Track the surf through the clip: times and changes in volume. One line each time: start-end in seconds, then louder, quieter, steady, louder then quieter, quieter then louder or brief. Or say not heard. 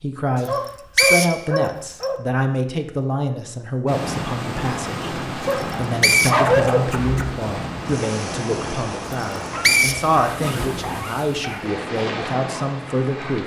3.9-13.4 steady.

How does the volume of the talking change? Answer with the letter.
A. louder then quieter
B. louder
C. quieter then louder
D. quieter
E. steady
E.